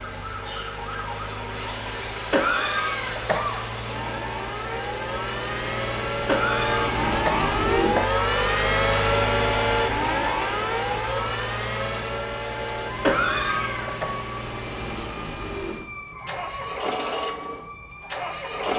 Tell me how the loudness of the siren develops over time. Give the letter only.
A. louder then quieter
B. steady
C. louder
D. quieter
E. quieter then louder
A.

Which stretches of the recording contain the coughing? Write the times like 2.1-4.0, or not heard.
2.3-3.6, 6.2-8.2, 13.0-14.1.